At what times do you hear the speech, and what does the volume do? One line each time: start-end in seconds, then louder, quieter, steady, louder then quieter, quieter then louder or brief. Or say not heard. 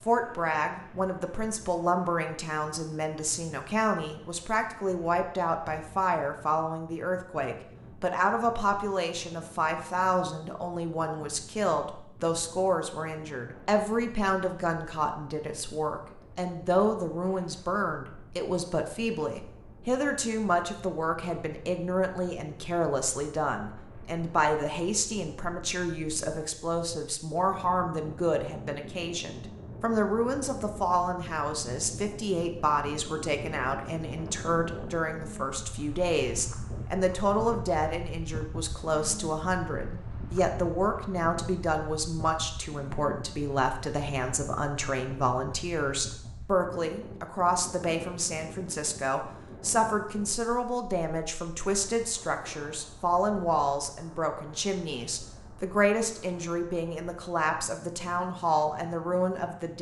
0.0-59.7 steady.